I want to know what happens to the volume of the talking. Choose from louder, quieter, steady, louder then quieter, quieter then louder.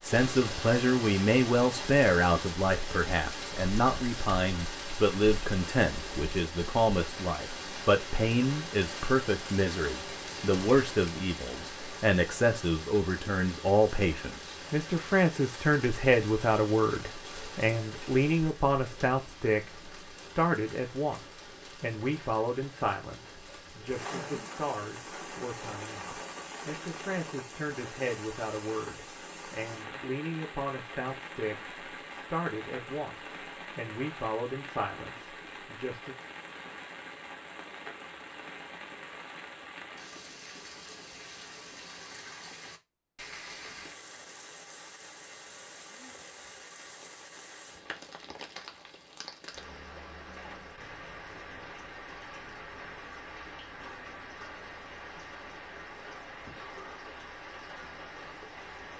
quieter.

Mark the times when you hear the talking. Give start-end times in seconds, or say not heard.
0.0-36.1.